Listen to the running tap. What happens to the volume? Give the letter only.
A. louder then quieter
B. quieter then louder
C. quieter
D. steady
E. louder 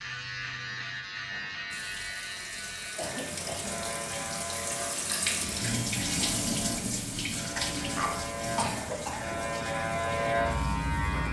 A.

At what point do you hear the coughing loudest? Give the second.
9 s.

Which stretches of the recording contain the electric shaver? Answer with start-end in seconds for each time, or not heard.
0.0-11.2.